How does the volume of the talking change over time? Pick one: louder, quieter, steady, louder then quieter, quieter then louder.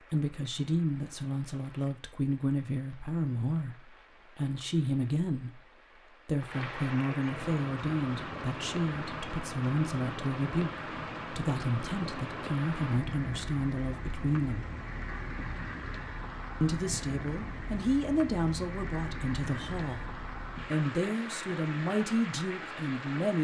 steady.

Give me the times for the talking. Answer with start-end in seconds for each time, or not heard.
0.1-14.7, 16.6-23.3.